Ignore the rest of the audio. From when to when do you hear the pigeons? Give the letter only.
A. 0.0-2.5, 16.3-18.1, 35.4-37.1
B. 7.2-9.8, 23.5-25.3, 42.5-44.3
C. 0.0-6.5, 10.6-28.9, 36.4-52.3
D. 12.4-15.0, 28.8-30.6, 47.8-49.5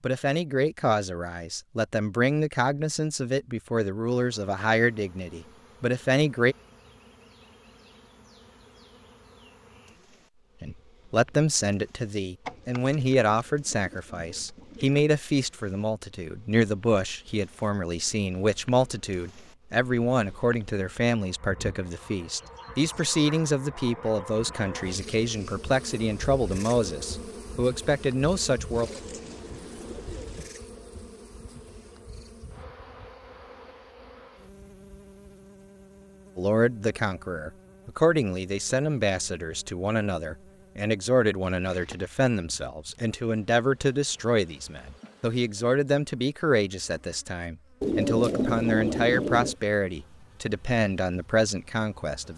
D.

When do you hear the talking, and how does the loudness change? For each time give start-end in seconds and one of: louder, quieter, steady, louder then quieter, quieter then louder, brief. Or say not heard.
0.0-6.5 steady
10.6-28.9 steady
36.4-52.3 steady.